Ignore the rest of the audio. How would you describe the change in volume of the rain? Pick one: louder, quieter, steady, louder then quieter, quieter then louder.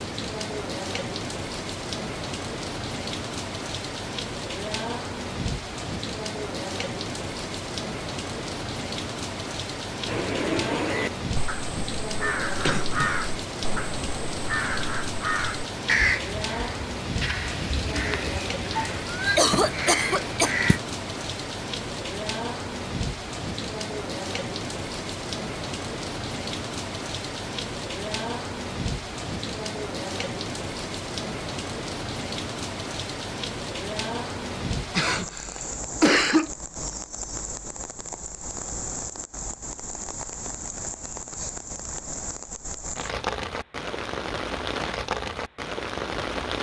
steady.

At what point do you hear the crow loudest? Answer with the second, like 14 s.
16 s.